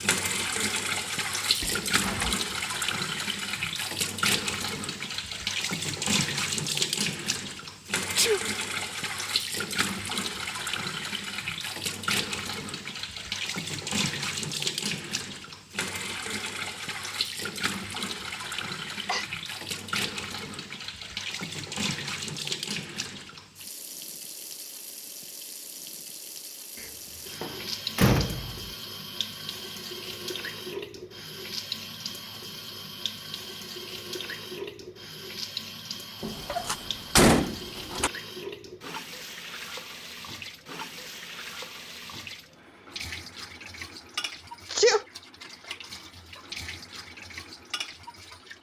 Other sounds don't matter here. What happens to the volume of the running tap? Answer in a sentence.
The volume of the running tap goes down.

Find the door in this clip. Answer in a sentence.
You can hear the door from 1.6 to 2.4 s, from 26.8 to 28.7 s and from 36.2 to 38.1 s.